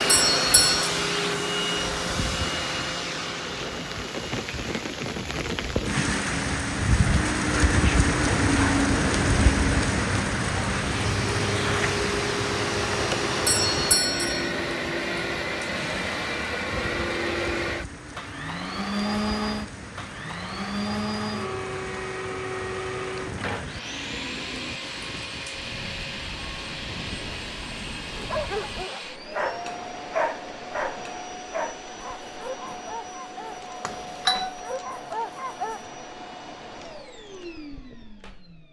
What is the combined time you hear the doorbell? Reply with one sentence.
You can hear the doorbell for 3 seconds altogether.